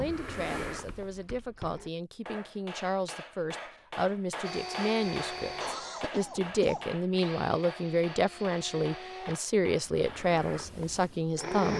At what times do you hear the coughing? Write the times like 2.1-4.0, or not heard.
5.6-7.0.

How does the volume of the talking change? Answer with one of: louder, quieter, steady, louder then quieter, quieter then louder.
louder.